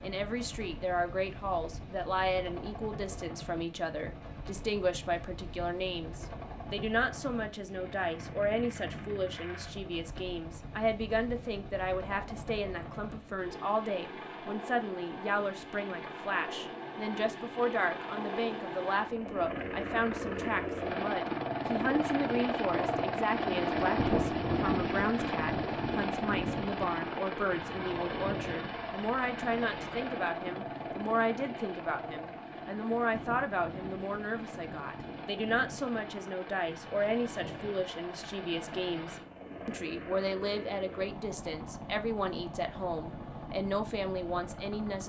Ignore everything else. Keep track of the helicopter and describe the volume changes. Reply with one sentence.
The volume of the helicopter goes up, then down.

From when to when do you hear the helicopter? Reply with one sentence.
You can hear the helicopter from 0.0 to 45.0 s.